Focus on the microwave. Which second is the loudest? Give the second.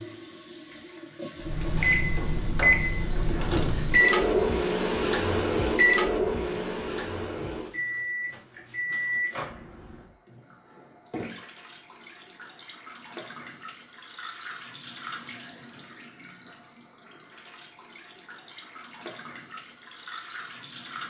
4 s.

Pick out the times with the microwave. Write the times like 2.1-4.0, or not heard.
1.4-9.9.